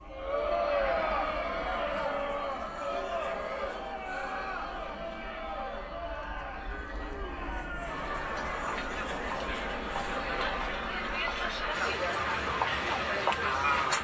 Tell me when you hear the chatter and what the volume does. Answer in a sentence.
You can hear the chatter from 0.1 to 14.0 s, getting quieter then louder.